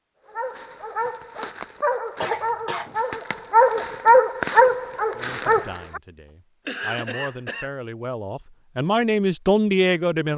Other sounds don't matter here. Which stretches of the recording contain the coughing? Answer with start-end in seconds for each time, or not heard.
2.2-3.0, 6.7-7.7.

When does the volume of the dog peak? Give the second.
4 s.